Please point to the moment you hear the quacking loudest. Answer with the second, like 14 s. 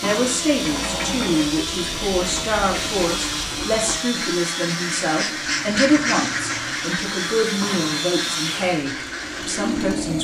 6 s.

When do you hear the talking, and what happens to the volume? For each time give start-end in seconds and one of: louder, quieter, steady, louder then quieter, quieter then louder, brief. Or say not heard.
0.0-10.1 steady.